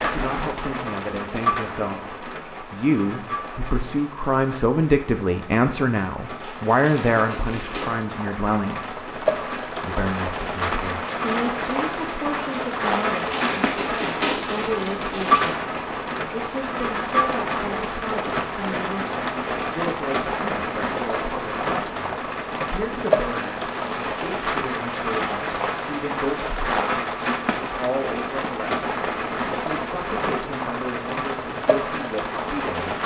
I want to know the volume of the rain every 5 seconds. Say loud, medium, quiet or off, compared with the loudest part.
medium, medium, loud, loud, loud, loud, loud.